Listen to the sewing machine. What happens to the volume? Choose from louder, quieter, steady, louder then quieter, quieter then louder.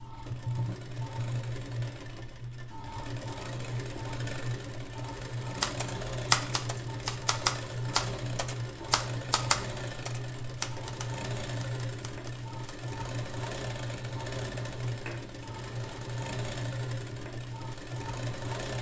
steady.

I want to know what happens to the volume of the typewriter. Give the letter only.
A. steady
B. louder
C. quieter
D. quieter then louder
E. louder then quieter
C.